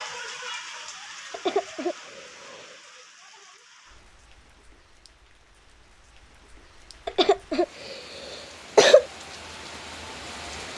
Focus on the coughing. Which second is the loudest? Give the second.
9 s.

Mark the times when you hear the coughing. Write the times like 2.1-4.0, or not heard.
1.3-2.8, 7.0-9.1.